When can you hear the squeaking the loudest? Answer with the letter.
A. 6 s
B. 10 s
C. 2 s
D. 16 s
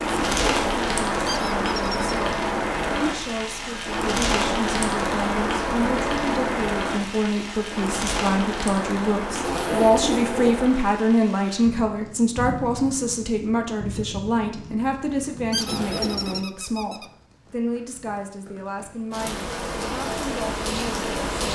D.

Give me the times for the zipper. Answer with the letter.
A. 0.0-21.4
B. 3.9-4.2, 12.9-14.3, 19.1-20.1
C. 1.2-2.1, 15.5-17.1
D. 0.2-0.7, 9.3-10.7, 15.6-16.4
D.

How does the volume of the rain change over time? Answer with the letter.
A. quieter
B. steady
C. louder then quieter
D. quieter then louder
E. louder
D.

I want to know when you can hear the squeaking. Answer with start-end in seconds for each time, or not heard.
1.2-2.1, 15.5-17.1.